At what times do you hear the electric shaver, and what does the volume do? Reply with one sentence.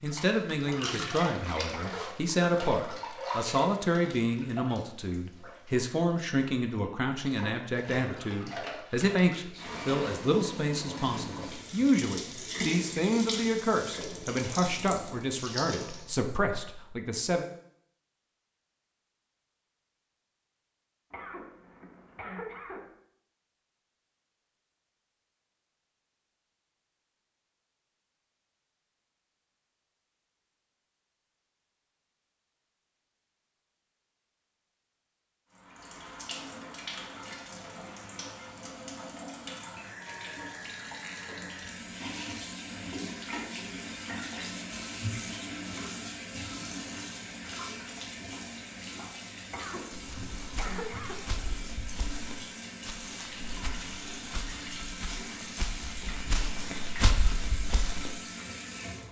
The electric shaver can't be heard in this clip.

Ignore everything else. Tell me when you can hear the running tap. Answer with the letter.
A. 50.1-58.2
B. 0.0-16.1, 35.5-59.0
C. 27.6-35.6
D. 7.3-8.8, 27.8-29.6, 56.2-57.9
B.